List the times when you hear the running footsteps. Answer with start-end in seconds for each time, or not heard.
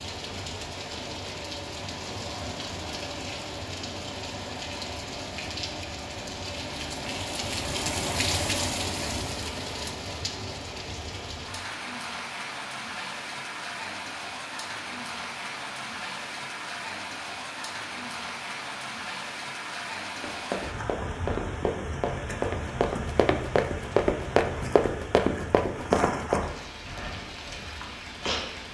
20.2-26.4.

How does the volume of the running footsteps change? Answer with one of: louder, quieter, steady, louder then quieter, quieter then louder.
louder.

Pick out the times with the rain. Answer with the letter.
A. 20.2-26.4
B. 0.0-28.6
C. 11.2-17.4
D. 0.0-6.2
B.